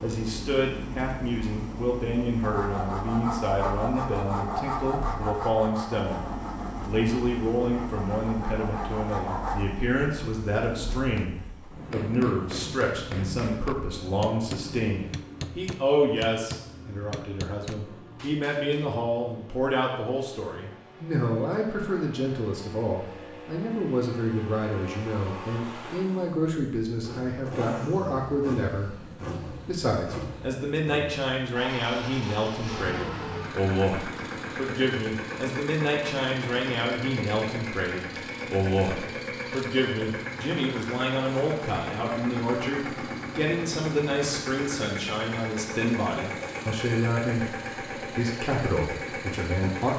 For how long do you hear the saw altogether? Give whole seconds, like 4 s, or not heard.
7 s.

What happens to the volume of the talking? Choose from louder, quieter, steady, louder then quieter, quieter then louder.
steady.